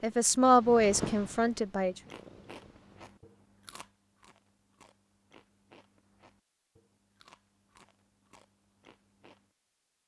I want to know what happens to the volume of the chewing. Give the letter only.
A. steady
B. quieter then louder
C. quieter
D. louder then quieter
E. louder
C.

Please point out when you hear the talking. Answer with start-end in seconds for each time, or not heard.
0.0-1.9.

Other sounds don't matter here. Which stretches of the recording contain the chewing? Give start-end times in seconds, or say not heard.
1.9-9.6.